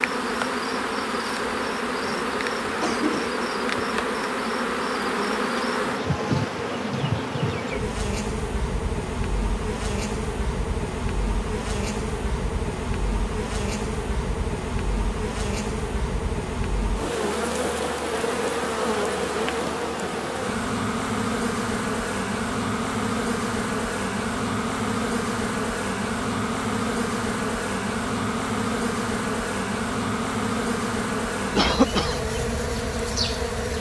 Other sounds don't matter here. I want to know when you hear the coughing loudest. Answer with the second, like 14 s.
32 s.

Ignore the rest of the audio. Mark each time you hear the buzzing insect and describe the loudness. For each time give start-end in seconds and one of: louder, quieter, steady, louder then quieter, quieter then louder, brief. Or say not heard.
0.0-33.7 steady.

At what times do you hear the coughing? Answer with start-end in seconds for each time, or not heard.
2.0-3.5, 31.6-32.2.